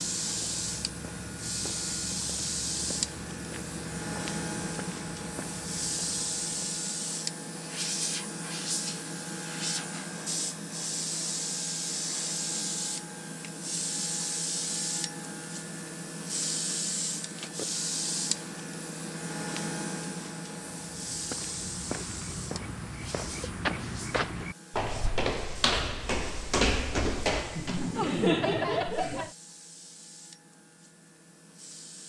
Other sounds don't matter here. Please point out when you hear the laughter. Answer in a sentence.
You can hear the laughter from 27.6 to 29.3 s.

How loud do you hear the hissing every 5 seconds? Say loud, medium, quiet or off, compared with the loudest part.
loud, loud, loud, loud, medium, quiet, quiet.